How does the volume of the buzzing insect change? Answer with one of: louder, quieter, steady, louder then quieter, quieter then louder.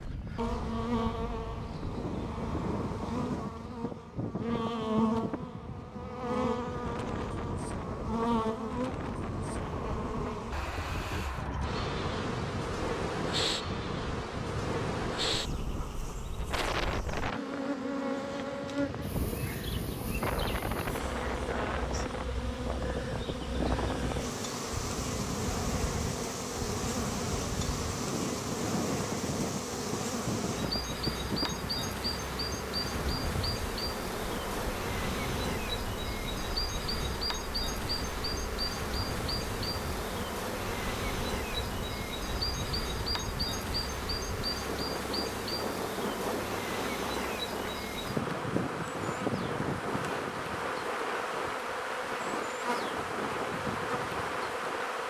steady.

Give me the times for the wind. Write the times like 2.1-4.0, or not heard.
0.0-55.0.